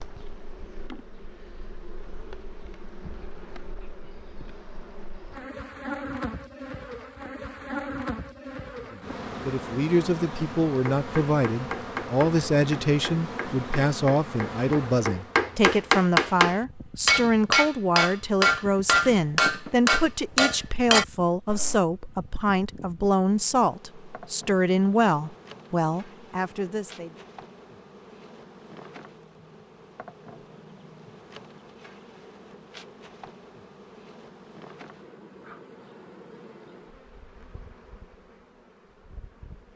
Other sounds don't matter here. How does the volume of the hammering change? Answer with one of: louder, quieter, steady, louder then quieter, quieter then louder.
louder.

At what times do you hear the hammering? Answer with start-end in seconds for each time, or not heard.
10.8-21.8.